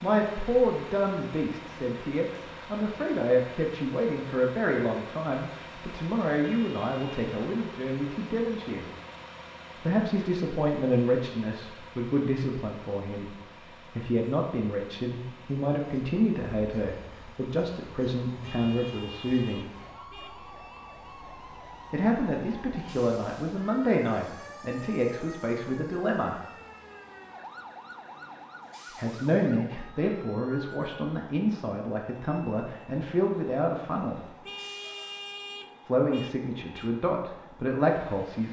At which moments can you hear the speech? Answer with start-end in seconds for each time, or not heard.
0.0-8.8, 9.8-19.7, 21.9-26.4, 28.9-34.4, 35.9-38.4.